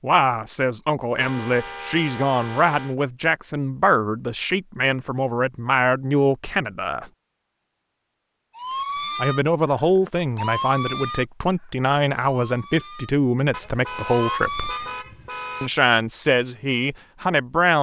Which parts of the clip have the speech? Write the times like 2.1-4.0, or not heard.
0.0-7.0, 9.2-14.8, 15.6-17.7.